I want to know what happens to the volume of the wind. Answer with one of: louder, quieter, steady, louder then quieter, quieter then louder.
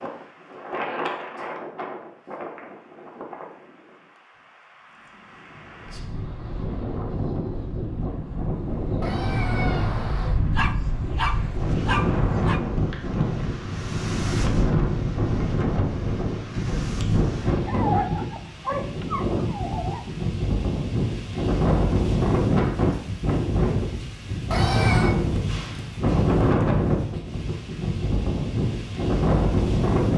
louder.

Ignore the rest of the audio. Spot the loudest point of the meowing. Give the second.
25 s.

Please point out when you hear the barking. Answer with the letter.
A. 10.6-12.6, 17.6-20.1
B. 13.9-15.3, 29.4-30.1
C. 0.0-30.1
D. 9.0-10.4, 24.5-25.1
A.